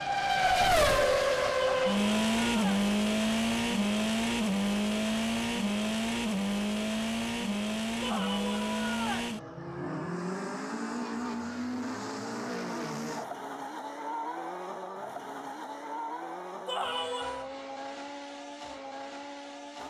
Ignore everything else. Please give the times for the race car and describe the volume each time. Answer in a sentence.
The race car can be heard from 0.0 to 19.8 s, getting quieter.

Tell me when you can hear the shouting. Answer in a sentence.
The shouting can be heard from 1.6 to 2.9 s, from 8.0 to 9.3 s and from 16.6 to 17.5 s.